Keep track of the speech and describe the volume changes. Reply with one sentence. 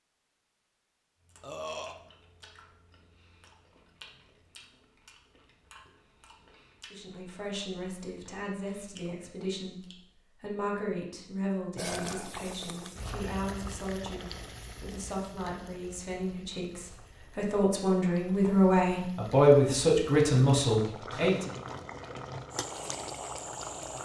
The volume of the speech goes up.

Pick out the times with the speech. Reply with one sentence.
The speech can be heard from 6.9 to 21.6 s.